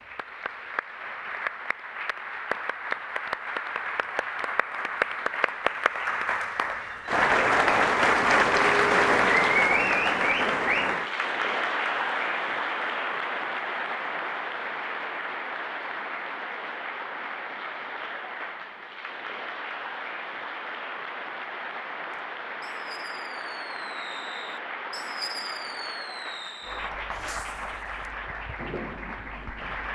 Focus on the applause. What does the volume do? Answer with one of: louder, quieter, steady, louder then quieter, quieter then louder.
louder then quieter.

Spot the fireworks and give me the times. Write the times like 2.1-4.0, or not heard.
22.1-29.9.